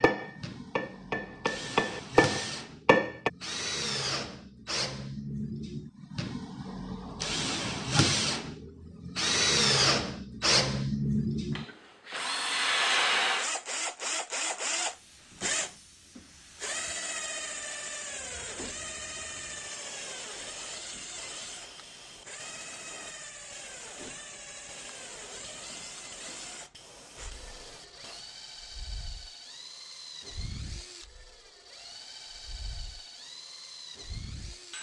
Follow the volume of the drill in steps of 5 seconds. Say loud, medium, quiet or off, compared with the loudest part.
medium, loud, loud, medium, quiet, quiet, quiet.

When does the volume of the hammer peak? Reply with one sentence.
The loudest moment of the hammer is at 2 seconds.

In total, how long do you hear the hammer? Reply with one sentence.
You can hear the hammer for 3 seconds altogether.